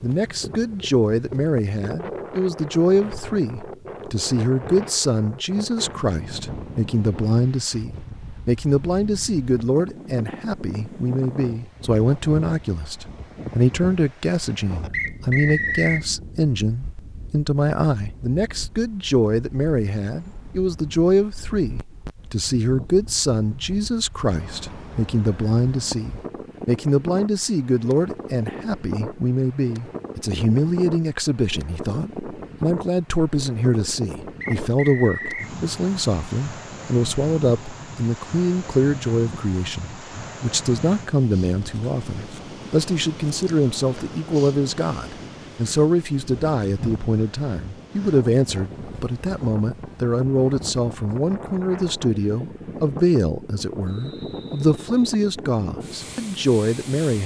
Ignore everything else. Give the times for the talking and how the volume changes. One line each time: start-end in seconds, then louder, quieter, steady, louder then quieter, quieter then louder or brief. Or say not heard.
0.0-57.2 steady.